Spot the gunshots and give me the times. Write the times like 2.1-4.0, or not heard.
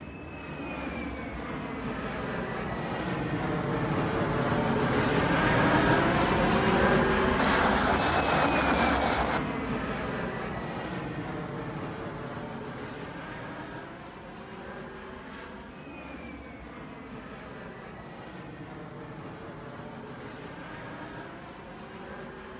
7.3-9.4.